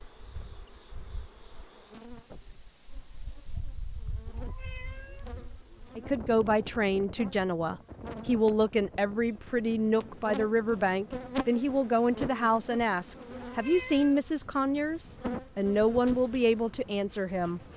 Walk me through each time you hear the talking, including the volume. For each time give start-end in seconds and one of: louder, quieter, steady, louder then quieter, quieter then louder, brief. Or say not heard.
6.0-17.6 steady.